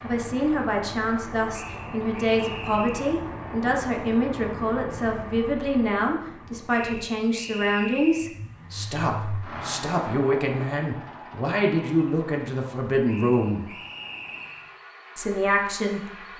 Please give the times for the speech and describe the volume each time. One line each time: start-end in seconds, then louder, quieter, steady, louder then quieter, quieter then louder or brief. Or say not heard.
0.0-13.7 steady
15.2-16.3 brief.